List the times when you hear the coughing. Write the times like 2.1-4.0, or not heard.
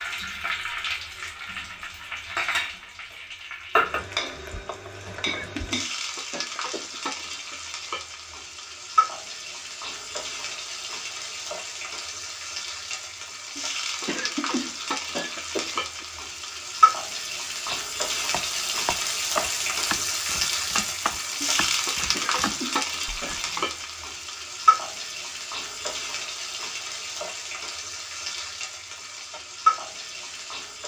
5.2-7.2, 14.1-16.1, 22.1-23.8.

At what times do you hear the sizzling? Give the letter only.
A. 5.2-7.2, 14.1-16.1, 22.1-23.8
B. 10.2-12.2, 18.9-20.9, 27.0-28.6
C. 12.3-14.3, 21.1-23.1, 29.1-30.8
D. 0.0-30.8
D.